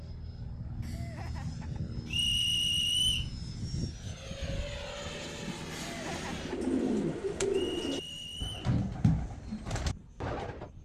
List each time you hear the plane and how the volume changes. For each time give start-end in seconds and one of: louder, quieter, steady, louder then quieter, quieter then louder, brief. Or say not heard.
0.0-10.8 quieter.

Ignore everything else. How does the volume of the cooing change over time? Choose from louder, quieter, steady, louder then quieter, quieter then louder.
louder then quieter.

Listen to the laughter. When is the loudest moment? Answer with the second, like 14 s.
6 s.